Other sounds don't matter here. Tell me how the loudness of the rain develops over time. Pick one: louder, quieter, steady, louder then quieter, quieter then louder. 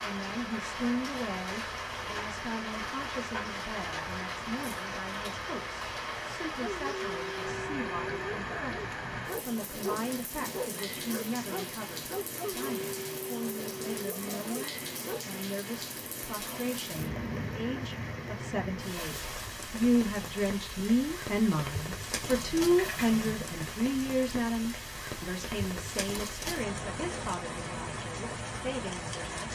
steady.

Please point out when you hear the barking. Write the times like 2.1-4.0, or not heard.
6.5-15.2.